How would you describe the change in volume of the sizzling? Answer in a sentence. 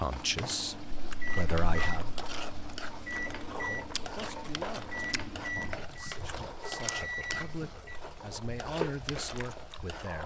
The volume of the sizzling stays about the same.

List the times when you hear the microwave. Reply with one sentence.
The microwave can be heard from 0.0 to 8.0 s.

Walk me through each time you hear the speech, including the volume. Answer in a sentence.
The speech can be heard briefly from 0.0 to 2.1 s; and from 3.6 to 10.2 s, getting quieter then louder.